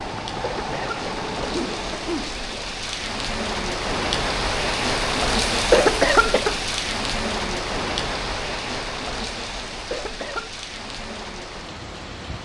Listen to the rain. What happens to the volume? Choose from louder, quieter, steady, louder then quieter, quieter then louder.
louder then quieter.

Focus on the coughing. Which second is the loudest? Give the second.
6 s.